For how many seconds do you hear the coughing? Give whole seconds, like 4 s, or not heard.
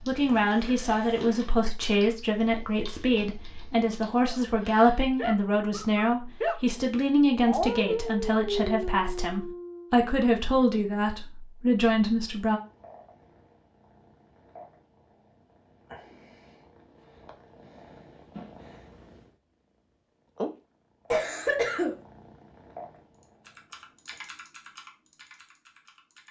2 s.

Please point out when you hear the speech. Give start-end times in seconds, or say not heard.
0.1-12.6.